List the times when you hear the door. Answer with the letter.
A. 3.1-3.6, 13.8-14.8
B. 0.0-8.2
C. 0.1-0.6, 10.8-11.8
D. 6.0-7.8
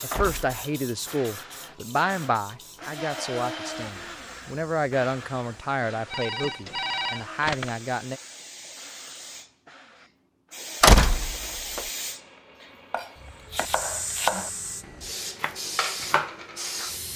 C.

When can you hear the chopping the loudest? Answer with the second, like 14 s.
14 s.